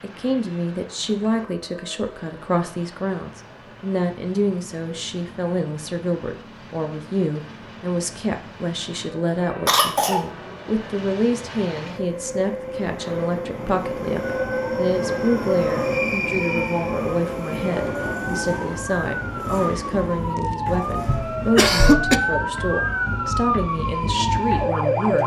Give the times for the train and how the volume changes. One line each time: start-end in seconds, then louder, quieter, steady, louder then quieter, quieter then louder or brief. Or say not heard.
0.0-25.2 louder then quieter.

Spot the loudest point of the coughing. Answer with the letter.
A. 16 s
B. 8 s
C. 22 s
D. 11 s
C.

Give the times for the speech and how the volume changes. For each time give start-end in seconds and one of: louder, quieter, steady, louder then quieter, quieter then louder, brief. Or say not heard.
0.0-25.2 steady.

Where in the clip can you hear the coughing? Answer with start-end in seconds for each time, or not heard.
9.7-10.2, 21.1-22.2.